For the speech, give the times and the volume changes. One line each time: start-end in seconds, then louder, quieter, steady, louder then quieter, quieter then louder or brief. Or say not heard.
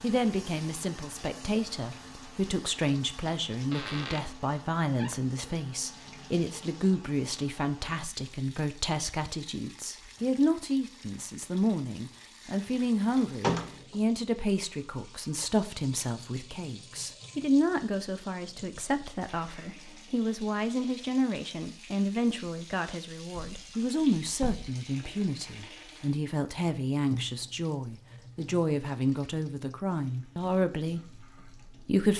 0.0-32.1 steady.